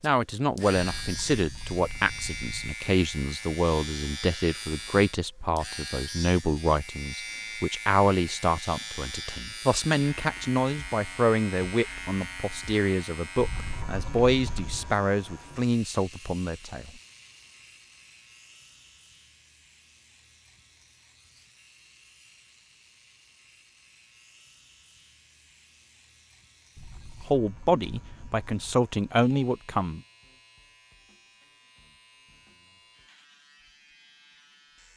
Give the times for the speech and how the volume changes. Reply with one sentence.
The speech can be heard from 0.0 to 16.9 s, at a steady volume; and briefly from 27.3 to 30.0 s.